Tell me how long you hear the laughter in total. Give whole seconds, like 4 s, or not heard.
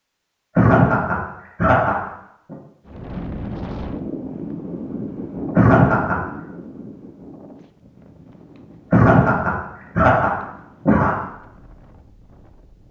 5 s.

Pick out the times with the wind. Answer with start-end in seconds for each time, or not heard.
2.9-12.8.